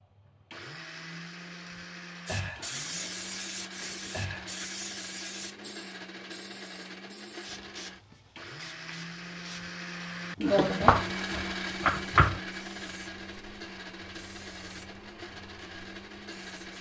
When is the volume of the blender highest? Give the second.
11 s.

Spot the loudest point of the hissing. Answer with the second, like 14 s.
3 s.